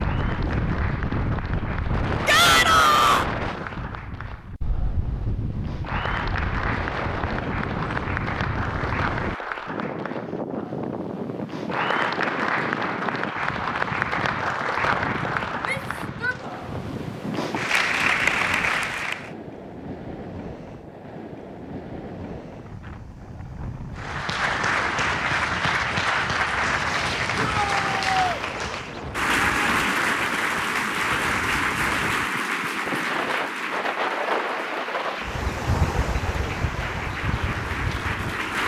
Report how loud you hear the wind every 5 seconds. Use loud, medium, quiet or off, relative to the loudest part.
loud, loud, loud, medium, medium, medium, loud, loud.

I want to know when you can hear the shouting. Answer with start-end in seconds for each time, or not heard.
2.2-3.2, 15.7-16.4, 27.4-28.4.